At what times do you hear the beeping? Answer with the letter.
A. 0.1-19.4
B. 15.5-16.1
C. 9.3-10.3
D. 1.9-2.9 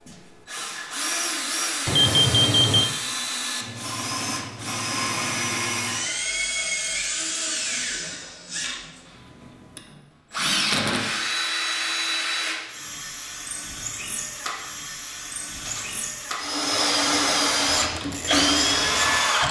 D.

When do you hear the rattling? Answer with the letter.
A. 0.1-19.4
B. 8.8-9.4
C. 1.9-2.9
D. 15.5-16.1
D.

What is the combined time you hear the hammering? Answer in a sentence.
You can't hear the hammering here.